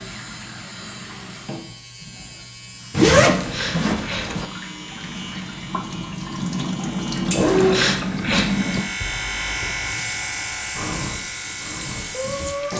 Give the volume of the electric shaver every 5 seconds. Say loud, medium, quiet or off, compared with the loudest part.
medium, loud, loud.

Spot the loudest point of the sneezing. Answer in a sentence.
The volume of the sneezing peaks at 8 seconds.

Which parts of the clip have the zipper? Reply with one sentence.
The zipper can be heard from 2.9 to 4.5 s and from 7.3 to 8.5 s.